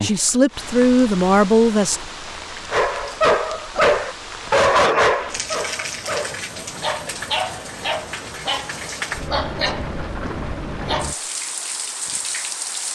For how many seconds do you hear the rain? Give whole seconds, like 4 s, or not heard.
13 s.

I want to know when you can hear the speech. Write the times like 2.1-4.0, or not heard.
0.0-2.0.